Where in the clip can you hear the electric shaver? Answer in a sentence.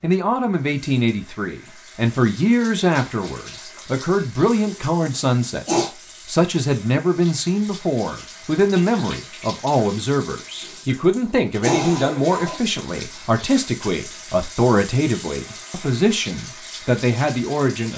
The electric shaver can't be heard in this clip.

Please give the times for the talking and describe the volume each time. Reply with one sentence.
The talking can be heard from 0.0 to 17.9 s, at a steady volume.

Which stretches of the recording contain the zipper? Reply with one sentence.
You can't hear the zipper here.